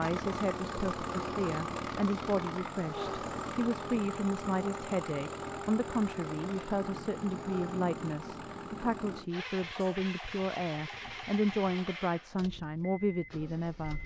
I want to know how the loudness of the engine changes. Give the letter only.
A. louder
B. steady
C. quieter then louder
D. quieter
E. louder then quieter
D.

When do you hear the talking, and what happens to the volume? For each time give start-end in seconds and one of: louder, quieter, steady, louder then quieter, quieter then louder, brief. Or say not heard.
0.0-14.0 steady.